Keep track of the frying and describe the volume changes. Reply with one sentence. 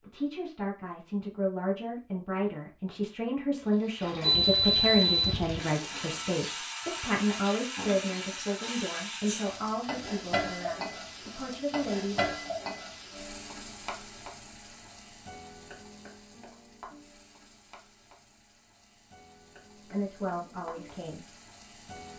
The loudness of the frying goes down.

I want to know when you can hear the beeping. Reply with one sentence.
You can hear the beeping from 4.2 to 5.4 s.